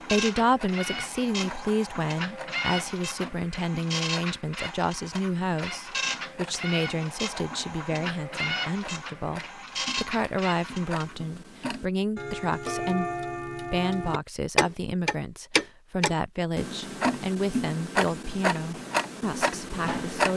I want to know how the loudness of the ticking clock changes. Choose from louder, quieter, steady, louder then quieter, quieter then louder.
louder.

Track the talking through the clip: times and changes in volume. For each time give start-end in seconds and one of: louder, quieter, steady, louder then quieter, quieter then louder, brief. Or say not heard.
0.0-20.3 steady.